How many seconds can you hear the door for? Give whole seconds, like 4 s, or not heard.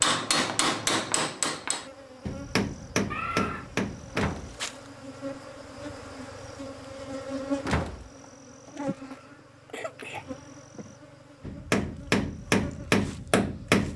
2 s.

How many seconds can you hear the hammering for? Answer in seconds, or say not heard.
7 s.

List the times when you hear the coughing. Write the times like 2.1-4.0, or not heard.
3.1-3.8, 8.9-10.2.